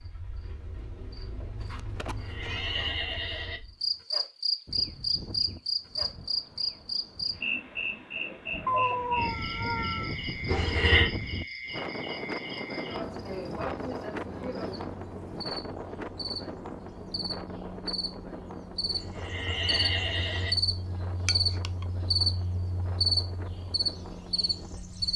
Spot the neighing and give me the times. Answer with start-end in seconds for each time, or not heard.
2.0-3.6, 10.4-11.1, 18.9-20.6.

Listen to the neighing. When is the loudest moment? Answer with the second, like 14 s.
11 s.